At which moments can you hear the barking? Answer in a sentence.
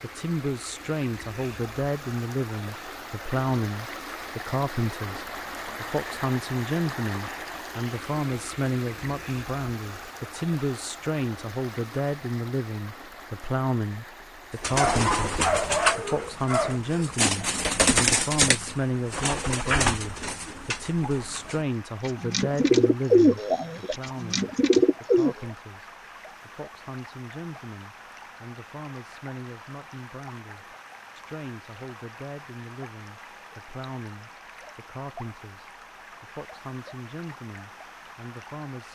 The barking can be heard from 14.8 to 16.8 s.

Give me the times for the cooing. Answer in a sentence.
The cooing can be heard from 14.6 to 25.4 s.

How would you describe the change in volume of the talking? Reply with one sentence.
The volume of the talking goes down.